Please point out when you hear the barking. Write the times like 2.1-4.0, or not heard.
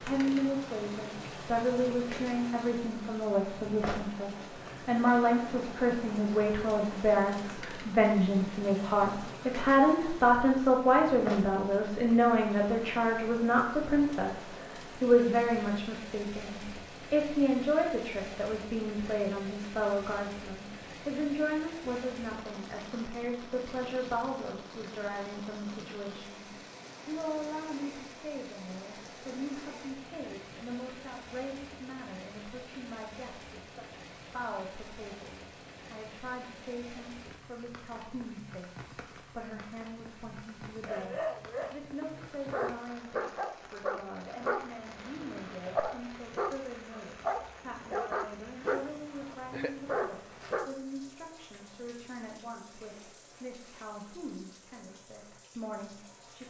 40.9-50.7.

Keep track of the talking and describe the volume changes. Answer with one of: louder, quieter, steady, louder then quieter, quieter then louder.
quieter.